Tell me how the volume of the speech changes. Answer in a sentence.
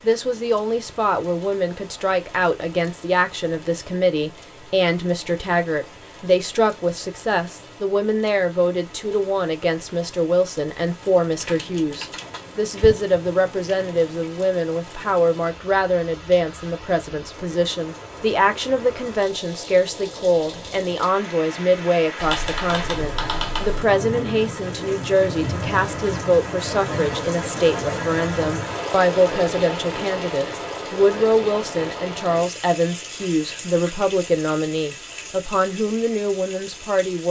The loudness of the speech stays about the same.